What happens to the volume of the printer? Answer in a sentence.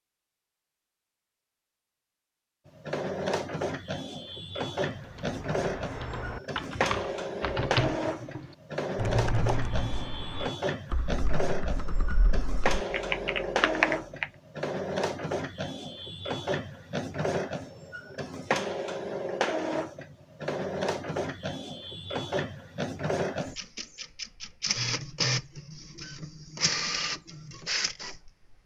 The loudness of the printer stays about the same.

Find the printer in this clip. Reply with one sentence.
You can hear the printer from 2.6 to 28.6 s.